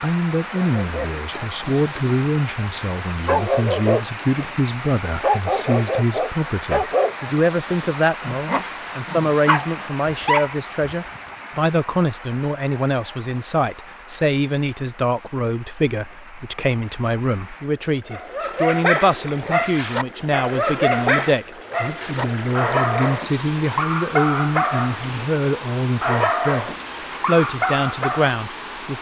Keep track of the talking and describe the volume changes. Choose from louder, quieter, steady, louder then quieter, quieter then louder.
steady.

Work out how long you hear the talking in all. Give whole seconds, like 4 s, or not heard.
29 s.